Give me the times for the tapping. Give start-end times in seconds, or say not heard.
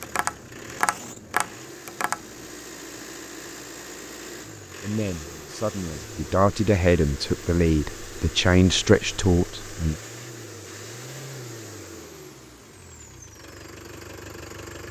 0.0-2.5.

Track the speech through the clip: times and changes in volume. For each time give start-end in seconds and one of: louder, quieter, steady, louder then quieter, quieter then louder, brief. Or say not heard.
4.8-9.9 louder.